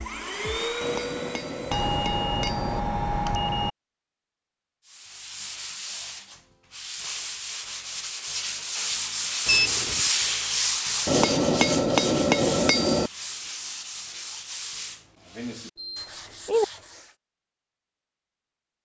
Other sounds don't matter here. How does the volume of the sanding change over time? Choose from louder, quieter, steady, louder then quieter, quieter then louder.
louder then quieter.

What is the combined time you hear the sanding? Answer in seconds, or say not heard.
12 s.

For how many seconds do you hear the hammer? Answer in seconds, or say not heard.
4 s.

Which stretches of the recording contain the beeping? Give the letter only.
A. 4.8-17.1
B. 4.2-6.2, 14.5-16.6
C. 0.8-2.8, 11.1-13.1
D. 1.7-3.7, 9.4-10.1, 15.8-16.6
D.